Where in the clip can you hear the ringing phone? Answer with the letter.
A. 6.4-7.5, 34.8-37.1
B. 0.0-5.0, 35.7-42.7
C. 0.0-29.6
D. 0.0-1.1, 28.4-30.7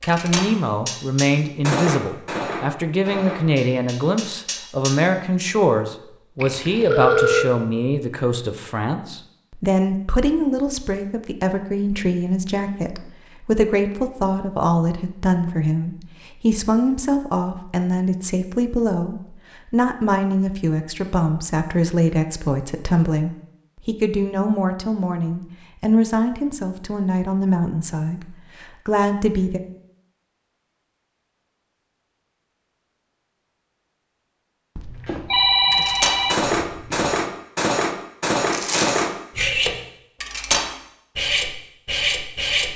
A.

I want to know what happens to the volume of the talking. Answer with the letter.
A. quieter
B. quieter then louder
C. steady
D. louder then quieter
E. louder
C.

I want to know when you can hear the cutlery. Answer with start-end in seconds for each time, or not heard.
0.0-5.0, 35.7-42.7.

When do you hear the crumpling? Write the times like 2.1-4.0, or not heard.
38.5-39.1.